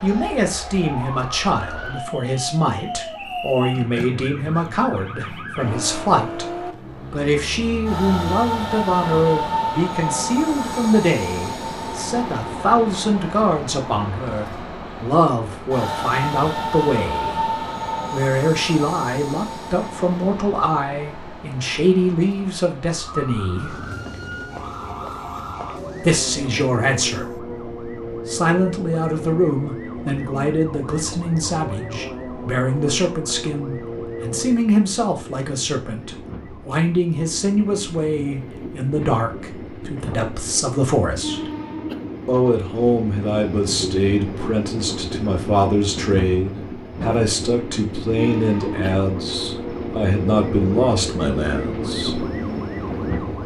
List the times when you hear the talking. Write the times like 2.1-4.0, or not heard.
0.0-6.5, 7.1-17.5, 18.1-23.8, 26.0-27.4, 28.2-41.5, 42.2-52.2.